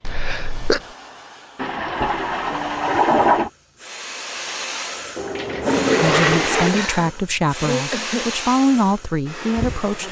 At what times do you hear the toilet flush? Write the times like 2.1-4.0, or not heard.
1.6-3.5, 5.2-6.8.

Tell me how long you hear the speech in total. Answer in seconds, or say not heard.
4 s.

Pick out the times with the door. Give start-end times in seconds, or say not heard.
not heard.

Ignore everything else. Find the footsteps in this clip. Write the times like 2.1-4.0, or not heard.
not heard.